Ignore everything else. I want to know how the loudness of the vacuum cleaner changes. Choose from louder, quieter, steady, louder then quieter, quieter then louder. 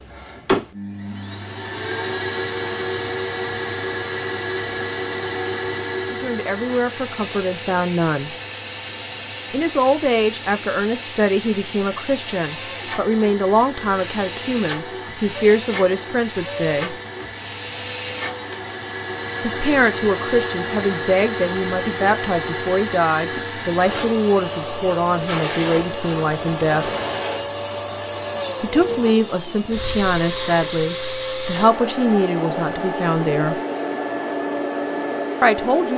steady.